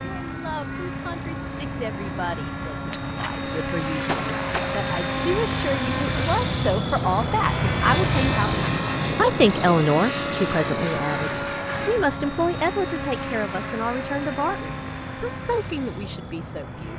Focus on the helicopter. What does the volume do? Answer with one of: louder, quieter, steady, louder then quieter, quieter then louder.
louder then quieter.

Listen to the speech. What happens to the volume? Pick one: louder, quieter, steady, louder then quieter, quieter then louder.
louder then quieter.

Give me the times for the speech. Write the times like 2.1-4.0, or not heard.
0.0-16.9.